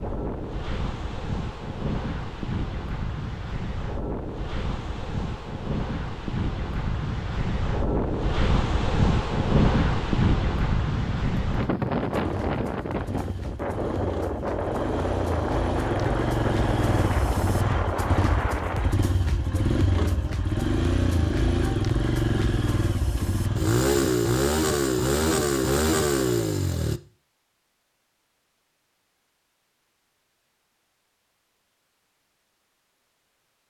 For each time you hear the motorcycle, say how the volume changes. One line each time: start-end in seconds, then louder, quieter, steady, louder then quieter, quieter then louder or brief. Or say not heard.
10.9-27.0 louder.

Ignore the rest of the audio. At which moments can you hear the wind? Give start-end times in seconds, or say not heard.
0.0-19.0.